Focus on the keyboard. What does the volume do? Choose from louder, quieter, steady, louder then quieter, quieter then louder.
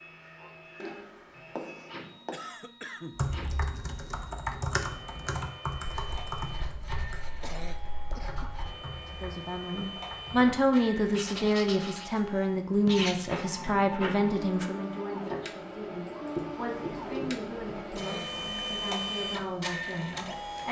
quieter.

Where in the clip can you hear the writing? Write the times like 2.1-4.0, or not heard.
0.8-2.4, 5.8-8.8, 11.1-12.2, 12.8-13.3, 16.4-17.8.